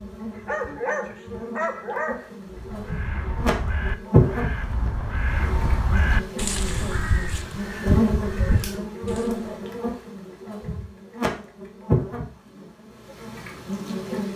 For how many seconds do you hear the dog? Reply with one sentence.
The dog can be heard for 3 seconds in total.